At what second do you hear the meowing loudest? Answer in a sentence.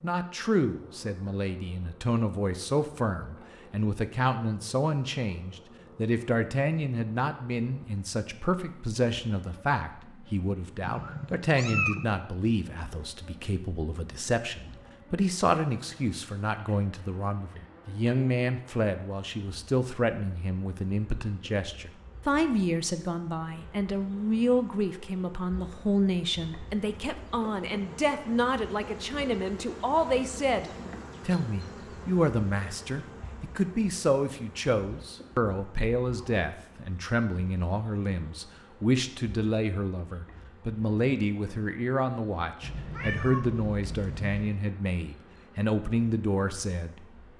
The loudest moment of the meowing is at 12 seconds.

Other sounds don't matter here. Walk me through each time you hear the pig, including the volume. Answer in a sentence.
The pig can't be heard in this clip.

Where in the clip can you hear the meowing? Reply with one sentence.
The meowing can be heard from 10.8 to 12.1 s and from 42.6 to 44.5 s.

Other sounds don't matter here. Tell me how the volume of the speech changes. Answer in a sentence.
The volume of the speech stays about the same.